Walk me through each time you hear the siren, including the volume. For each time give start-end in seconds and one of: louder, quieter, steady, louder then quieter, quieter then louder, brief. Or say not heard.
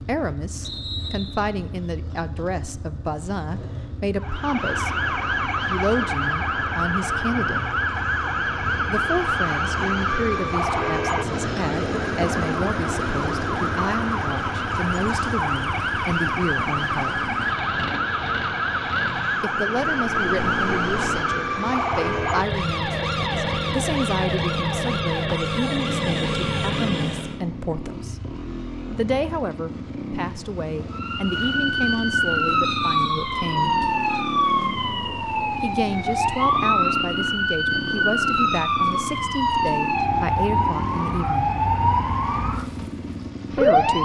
4.2-27.4 steady
30.9-44.0 steady.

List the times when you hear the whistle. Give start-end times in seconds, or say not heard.
0.6-1.5, 32.7-33.5.